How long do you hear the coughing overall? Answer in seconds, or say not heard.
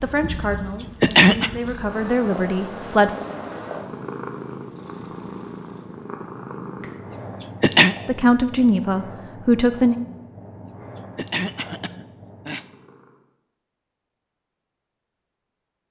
4 s.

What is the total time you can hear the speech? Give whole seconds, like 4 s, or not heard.
5 s.